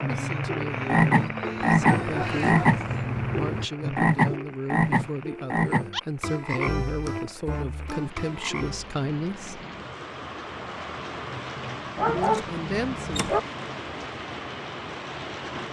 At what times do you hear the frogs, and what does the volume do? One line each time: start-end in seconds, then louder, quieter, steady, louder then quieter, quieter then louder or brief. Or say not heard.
0.0-8.9 quieter.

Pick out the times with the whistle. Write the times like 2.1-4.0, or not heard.
not heard.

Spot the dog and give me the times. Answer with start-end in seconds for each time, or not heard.
1.8-3.1, 11.9-13.4.